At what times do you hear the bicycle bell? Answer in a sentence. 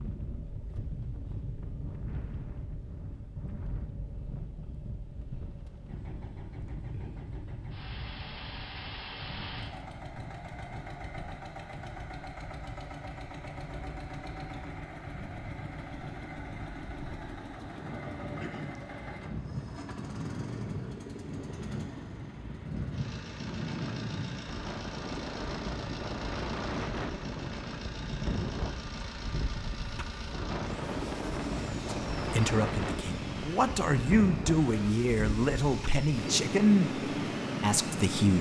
You can't hear the bicycle bell here.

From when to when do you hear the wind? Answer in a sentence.
You can hear the wind from 0.0 to 38.3 s.